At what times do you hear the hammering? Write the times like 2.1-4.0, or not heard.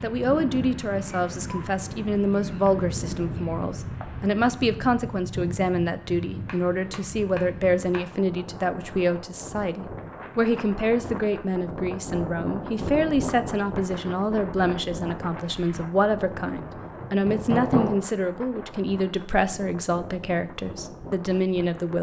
6.5-8.1, 17.0-17.9.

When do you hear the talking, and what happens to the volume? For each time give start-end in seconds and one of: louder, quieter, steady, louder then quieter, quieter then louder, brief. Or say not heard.
0.0-21.9 steady.